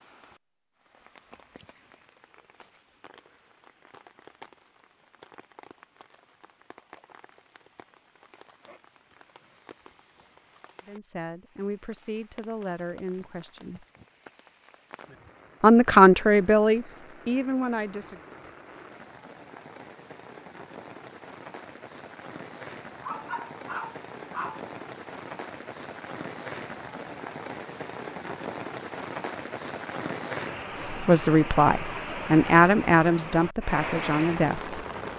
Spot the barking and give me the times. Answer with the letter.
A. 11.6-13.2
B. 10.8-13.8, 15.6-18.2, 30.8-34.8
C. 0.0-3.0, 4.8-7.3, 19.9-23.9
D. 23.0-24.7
D.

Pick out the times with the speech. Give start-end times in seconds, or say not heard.
10.8-13.8, 15.6-18.2, 30.8-34.8.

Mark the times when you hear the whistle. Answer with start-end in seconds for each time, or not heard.
not heard.